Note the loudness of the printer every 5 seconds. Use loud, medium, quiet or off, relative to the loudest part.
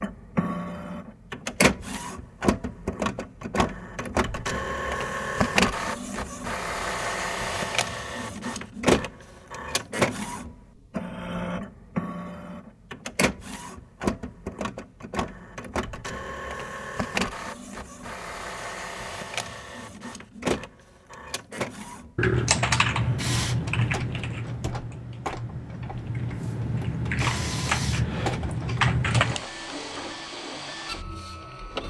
loud, loud, loud, medium, medium, medium, medium.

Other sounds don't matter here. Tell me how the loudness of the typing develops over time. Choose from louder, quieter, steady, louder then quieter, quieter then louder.
quieter then louder.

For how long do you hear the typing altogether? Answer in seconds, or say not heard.
7 s.